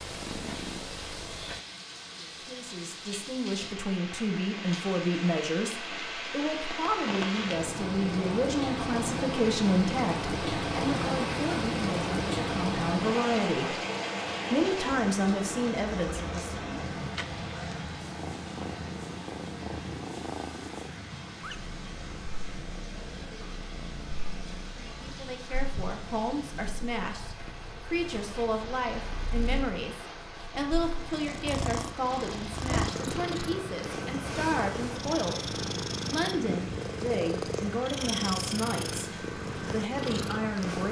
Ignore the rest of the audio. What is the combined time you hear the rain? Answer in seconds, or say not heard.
41 s.